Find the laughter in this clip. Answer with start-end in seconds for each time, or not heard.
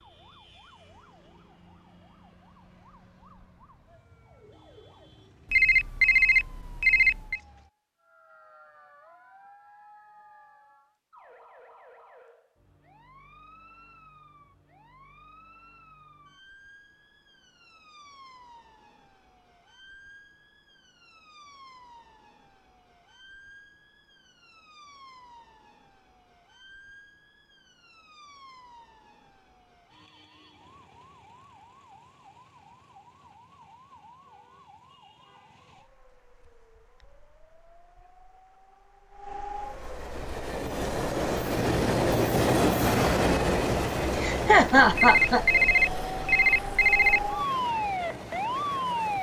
44.1-45.5.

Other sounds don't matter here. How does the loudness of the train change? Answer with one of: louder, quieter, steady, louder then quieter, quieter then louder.
louder then quieter.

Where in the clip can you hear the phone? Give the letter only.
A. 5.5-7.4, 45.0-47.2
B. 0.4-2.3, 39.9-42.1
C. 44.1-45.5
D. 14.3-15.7
A.